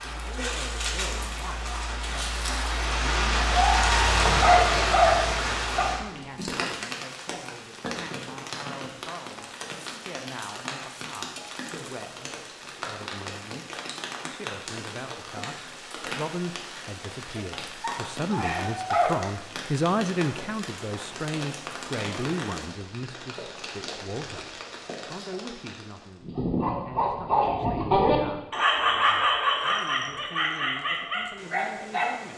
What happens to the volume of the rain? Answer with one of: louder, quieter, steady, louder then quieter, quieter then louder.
quieter.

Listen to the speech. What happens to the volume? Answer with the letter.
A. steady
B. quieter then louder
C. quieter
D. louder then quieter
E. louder
D.